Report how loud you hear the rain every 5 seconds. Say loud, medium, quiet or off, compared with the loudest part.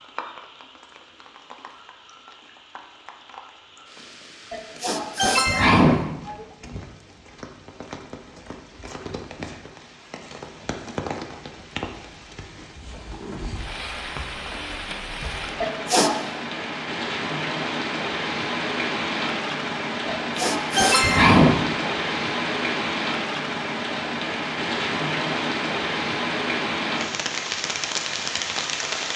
quiet, quiet, medium, loud, loud, loud.